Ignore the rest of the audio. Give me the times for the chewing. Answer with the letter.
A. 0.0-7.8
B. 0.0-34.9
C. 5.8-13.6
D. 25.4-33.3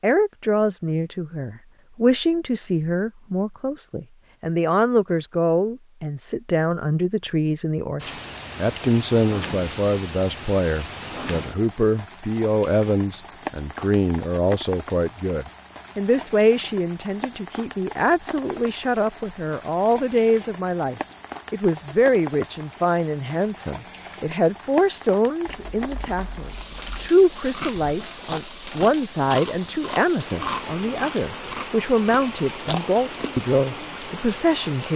D.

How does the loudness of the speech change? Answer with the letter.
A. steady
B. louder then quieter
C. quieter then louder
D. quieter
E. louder
A.